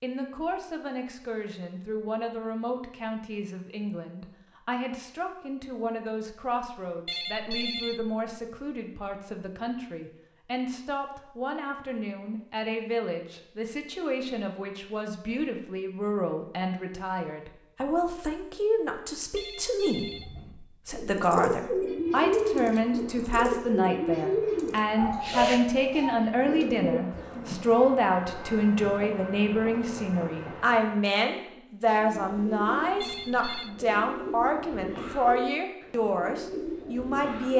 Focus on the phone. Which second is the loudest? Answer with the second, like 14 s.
8 s.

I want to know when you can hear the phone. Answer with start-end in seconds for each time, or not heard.
7.0-8.2, 19.4-20.4, 33.0-33.7.